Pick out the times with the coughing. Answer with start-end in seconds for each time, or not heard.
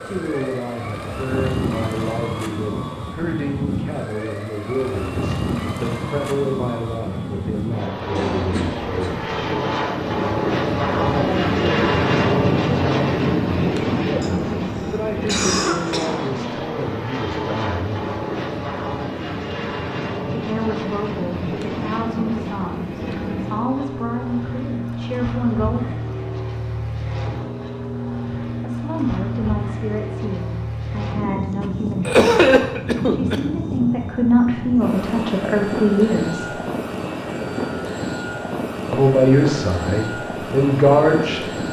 8.2-9.2, 14.2-16.1, 32.0-33.4.